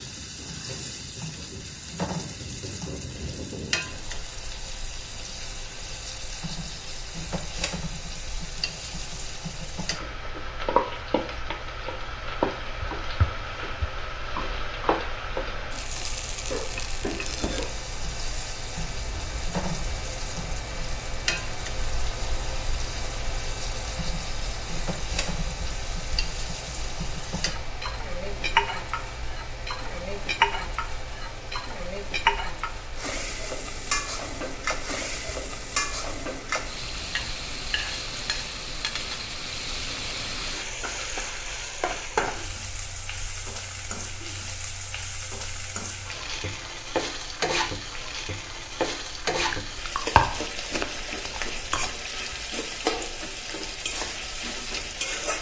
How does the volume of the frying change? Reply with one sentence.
The volume of the frying stays about the same.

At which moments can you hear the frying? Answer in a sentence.
You can hear the frying from 0.0 to 55.3 s.